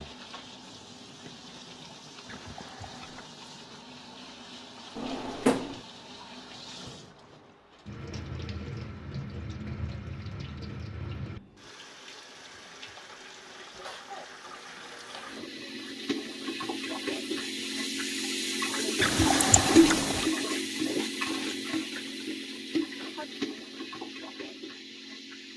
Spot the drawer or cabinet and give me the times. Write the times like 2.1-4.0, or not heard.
5.0-5.8.